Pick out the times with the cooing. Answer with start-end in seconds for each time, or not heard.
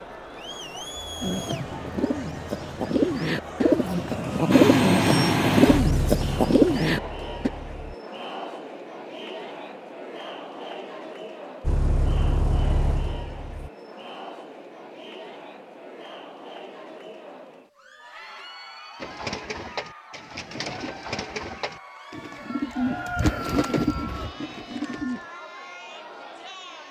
1.2-7.5, 18.9-25.2.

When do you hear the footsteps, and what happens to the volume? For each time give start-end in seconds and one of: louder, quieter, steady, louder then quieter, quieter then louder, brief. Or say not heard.
not heard.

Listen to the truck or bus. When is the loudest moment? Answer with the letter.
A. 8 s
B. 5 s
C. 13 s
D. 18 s
B.